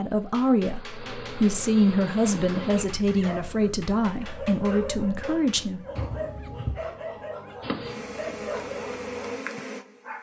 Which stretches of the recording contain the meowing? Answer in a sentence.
The meowing can be heard from 6.0 to 6.9 s.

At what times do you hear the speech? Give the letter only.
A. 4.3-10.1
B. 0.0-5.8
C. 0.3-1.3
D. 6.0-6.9
B.